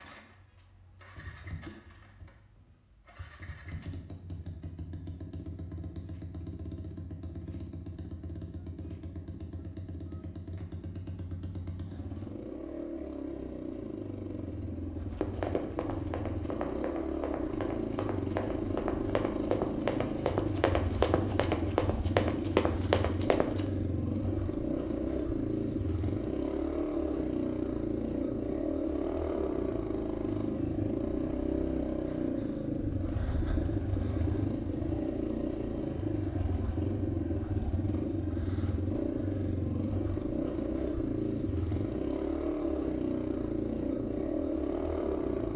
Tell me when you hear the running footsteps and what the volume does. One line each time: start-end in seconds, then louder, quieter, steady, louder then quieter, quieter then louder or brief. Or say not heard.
15.1-23.6 louder.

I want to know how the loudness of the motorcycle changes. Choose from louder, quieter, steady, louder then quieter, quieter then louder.
louder.